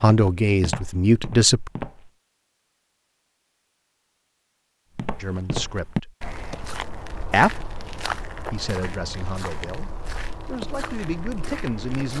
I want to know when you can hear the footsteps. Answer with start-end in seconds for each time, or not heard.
0.1-2.1, 5.0-12.1.